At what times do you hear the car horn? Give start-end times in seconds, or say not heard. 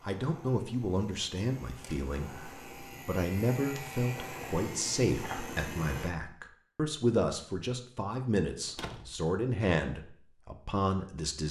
not heard.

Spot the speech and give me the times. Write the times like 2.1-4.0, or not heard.
0.0-11.4.